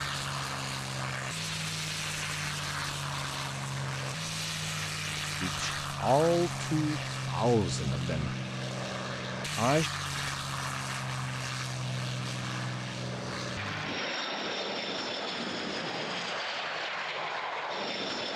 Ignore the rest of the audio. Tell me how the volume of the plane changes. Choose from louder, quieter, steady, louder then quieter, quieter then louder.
steady.